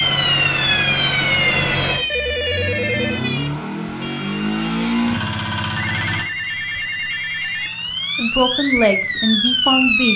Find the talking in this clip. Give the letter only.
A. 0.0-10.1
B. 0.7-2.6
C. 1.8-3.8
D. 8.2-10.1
D.